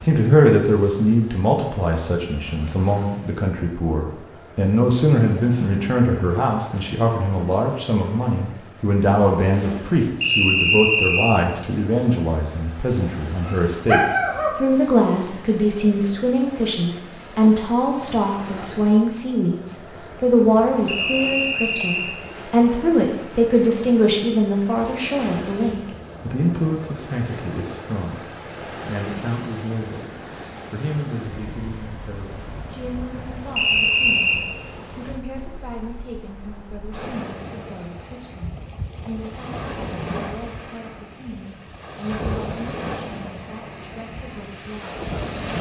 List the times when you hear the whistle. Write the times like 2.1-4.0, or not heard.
10.2-11.3, 20.9-22.1, 33.5-34.4.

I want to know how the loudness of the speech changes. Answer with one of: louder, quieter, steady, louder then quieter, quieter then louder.
quieter.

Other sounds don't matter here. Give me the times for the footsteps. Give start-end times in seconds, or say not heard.
not heard.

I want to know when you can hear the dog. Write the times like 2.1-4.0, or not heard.
13.4-14.5.